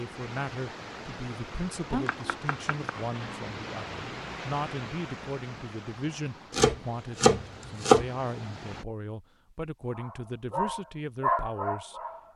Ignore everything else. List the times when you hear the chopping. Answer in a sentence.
You can hear the chopping from 1.9 to 3.5 s and from 6.5 to 8.1 s.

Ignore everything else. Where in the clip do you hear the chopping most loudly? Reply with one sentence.
The volume of the chopping peaks at 8 seconds.